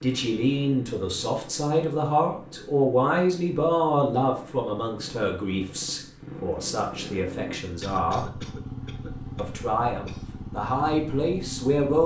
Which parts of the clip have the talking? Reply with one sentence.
You can hear the talking from 0.0 to 8.2 s and from 9.3 to 12.0 s.